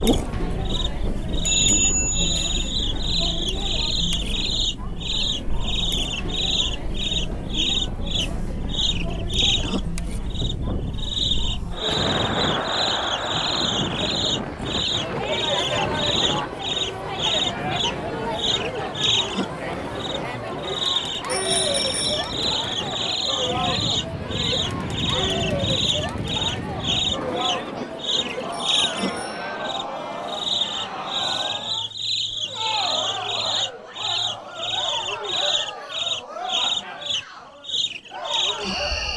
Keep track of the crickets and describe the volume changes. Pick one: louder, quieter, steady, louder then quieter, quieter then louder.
steady.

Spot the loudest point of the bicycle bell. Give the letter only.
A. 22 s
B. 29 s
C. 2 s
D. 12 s
C.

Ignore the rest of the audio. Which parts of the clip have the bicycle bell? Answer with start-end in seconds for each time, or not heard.
1.4-2.6, 21.2-22.4, 28.5-29.6.